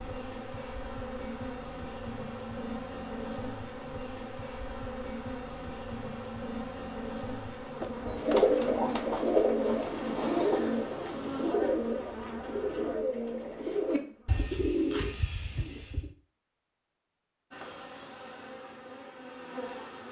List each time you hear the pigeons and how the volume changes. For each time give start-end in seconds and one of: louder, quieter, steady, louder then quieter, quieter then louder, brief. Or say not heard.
7.8-16.1 quieter.